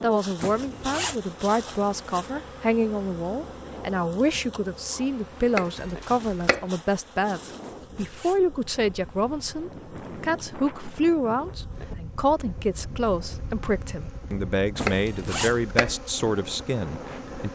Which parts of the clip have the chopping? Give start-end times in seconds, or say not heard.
5.5-6.7, 14.8-15.9.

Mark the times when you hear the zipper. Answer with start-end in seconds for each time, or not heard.
0.3-1.2, 7.6-8.4, 14.8-15.6.